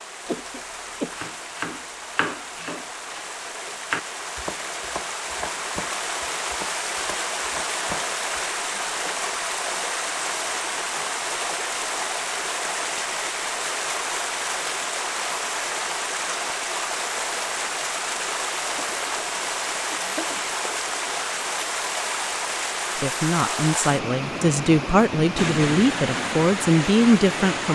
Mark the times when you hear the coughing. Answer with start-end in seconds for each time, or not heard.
0.2-1.1, 18.7-19.3, 19.9-20.4.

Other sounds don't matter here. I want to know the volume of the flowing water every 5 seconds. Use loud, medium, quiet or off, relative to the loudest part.
medium, loud, loud, loud, loud, loud.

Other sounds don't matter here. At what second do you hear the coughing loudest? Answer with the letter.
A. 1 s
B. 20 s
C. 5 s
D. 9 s
A.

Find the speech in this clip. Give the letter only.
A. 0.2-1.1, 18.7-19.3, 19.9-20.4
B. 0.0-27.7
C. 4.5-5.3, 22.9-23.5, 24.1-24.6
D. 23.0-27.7
D.